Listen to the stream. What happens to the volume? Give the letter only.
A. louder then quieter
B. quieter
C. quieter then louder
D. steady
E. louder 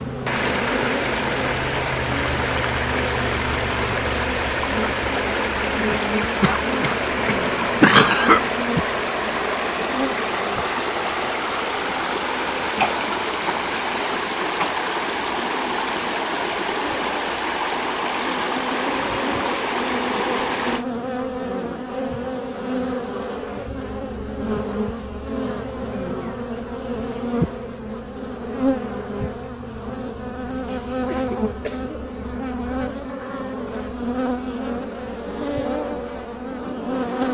D.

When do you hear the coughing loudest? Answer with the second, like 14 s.
8 s.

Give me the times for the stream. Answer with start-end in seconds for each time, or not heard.
0.0-20.9.